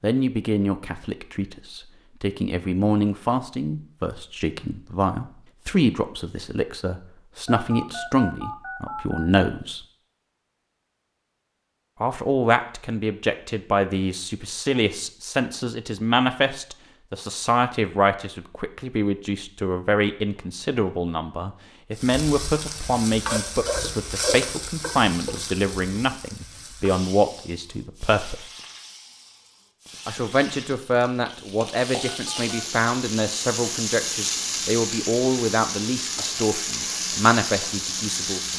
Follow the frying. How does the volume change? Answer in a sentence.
The loudness of the frying goes down, then up.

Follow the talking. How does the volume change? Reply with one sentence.
The loudness of the talking stays about the same.